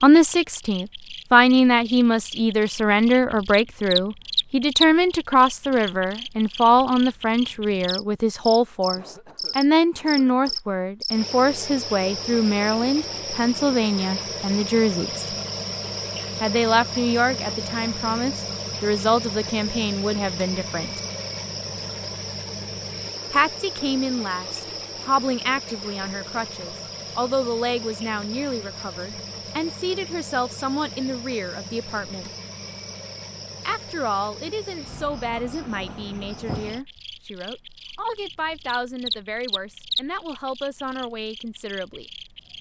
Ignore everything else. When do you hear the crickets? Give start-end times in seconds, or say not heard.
0.0-42.5.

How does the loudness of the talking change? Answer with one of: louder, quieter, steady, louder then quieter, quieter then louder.
quieter.